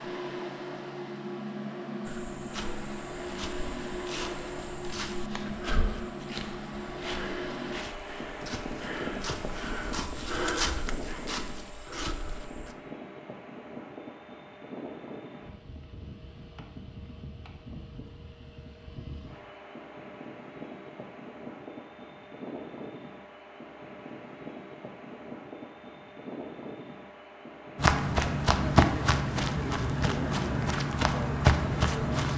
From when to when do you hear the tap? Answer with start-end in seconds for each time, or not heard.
not heard.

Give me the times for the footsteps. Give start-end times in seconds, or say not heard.
2.0-12.8, 27.8-32.3.